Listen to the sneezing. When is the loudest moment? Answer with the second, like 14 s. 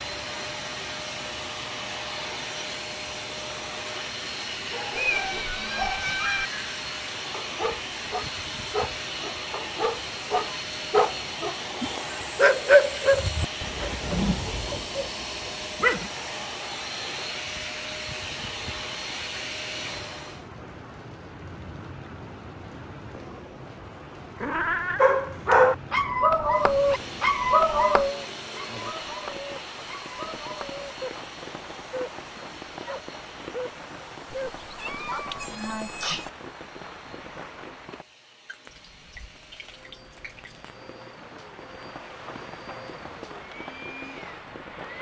36 s.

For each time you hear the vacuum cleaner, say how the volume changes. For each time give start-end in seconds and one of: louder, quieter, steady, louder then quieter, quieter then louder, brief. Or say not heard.
0.0-20.4 steady
26.4-44.9 quieter then louder.